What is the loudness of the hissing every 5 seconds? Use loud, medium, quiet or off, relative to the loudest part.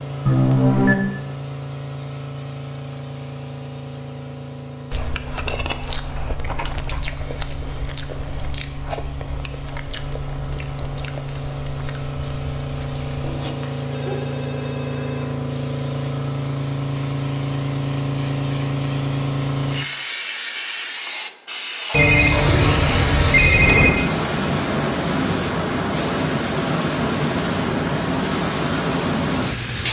medium, quiet, medium, loud, loud, loud.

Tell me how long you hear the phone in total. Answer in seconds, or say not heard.
5 s.